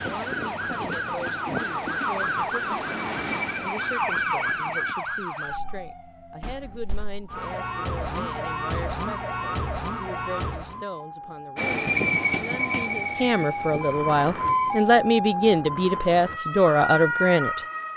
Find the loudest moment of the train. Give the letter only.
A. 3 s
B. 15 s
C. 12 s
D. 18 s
C.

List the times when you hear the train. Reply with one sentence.
The train can be heard from 0.0 to 5.0 s and from 11.6 to 14.8 s.